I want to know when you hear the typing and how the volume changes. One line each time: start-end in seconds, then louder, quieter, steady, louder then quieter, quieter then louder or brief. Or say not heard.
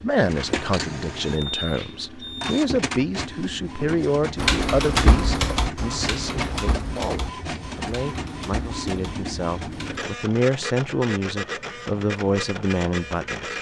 4.3-10.1 quieter.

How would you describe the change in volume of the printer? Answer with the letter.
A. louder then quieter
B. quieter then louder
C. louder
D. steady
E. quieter
D.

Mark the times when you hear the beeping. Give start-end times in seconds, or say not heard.
1.2-2.5.